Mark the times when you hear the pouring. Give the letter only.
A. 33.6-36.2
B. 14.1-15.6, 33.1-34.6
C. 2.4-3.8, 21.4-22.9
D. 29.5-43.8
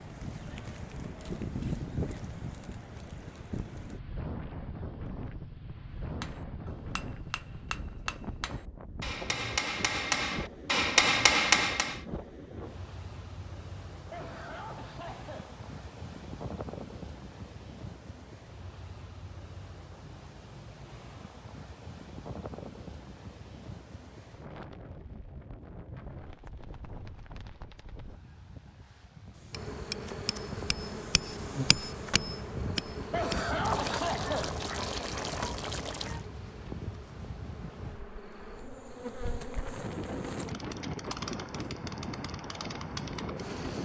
A.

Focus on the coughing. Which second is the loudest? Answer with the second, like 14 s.
34 s.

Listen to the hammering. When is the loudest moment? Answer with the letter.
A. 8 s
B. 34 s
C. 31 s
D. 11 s
D.